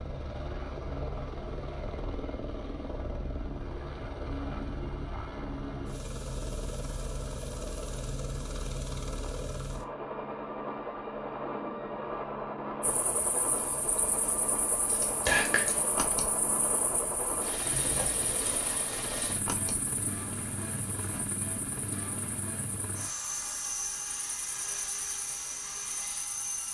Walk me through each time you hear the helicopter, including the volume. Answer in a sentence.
The helicopter can be heard from 0.0 to 26.6 s, at a steady volume.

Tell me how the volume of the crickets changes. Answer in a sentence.
The loudness of the crickets goes down.